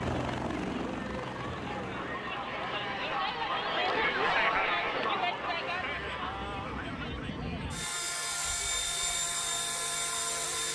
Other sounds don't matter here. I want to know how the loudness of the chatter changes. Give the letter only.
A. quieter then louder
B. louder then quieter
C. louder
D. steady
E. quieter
B.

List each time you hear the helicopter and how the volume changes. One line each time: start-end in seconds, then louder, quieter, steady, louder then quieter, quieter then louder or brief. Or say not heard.
0.0-10.6 quieter then louder.